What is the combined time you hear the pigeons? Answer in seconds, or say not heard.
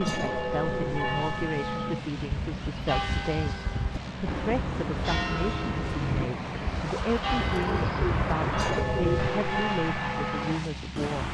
2 s.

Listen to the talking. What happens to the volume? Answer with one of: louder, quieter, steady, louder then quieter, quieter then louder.
steady.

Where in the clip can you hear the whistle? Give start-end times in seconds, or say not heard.
not heard.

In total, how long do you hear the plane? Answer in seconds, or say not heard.
11 s.